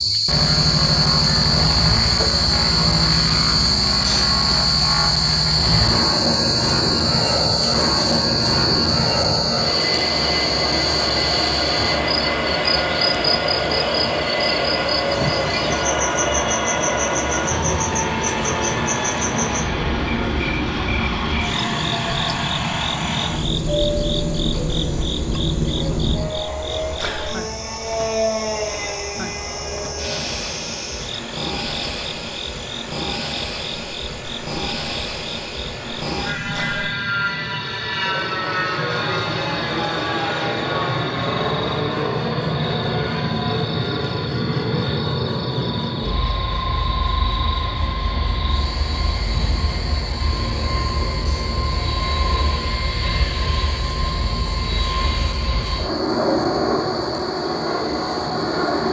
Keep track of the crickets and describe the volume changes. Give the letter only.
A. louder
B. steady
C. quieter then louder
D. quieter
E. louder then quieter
D.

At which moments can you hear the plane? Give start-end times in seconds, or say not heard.
0.0-58.8.